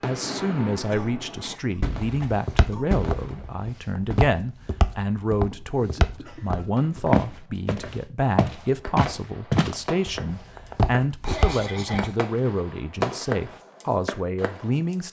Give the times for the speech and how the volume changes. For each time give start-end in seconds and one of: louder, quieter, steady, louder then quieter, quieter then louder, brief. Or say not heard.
0.0-15.0 steady.